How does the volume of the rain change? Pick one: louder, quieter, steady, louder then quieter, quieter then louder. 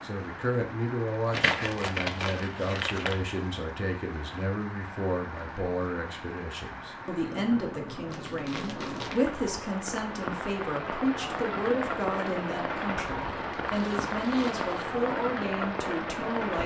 louder.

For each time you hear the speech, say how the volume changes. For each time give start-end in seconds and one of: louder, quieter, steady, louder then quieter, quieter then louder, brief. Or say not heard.
0.0-16.6 steady.